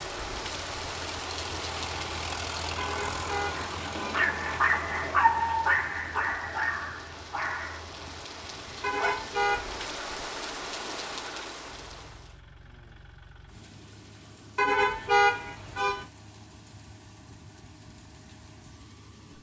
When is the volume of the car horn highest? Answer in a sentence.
The volume of the car horn peaks at 15 seconds.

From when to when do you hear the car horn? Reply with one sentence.
You can hear the car horn from 2.8 to 4.2 s, from 8.8 to 9.7 s and from 14.6 to 16.1 s.